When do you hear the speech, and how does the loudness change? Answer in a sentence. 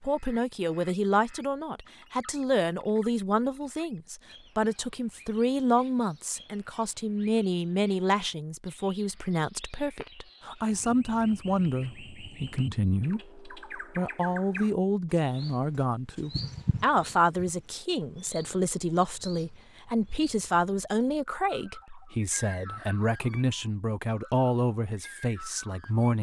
You can hear the speech from 0.0 to 26.1 s, at a steady volume.